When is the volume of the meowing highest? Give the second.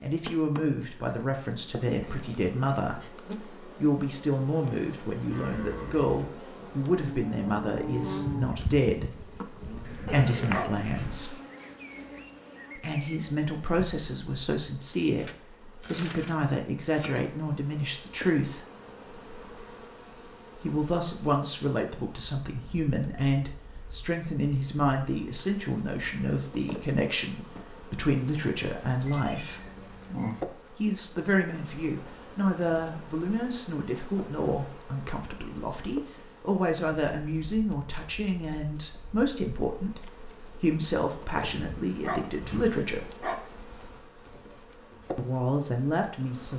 30 s.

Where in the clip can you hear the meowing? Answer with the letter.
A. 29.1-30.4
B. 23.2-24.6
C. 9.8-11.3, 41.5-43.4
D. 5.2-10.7
A.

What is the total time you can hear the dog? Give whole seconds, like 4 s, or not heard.
3 s.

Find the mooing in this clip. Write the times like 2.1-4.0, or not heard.
5.2-10.7.